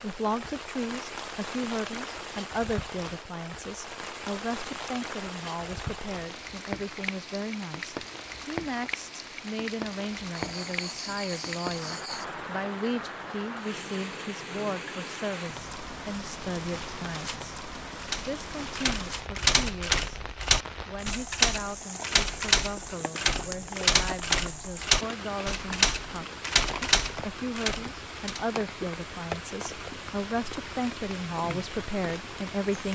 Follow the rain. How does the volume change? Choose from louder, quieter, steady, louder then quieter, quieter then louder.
steady.